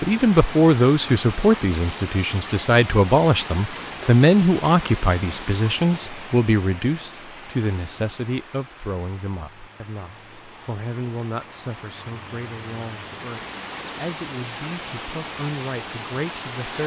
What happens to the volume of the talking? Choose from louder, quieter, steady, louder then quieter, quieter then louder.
quieter.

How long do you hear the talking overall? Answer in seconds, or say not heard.
17 s.